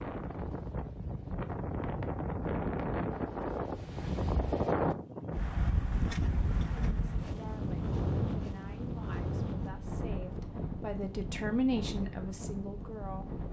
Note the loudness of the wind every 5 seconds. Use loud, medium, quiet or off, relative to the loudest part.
loud, loud, medium.